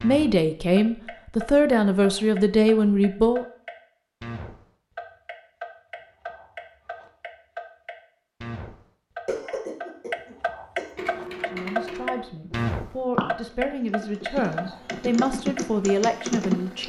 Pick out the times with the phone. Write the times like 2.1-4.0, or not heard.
not heard.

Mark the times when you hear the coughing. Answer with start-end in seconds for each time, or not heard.
9.2-11.1.